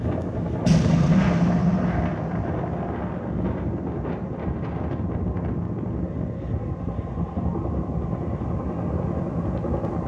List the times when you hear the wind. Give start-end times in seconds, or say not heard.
0.0-10.0.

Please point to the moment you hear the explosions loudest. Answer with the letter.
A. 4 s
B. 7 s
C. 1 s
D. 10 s
C.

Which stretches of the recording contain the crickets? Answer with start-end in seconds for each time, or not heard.
not heard.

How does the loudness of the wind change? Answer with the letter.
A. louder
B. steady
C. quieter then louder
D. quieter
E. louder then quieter
B.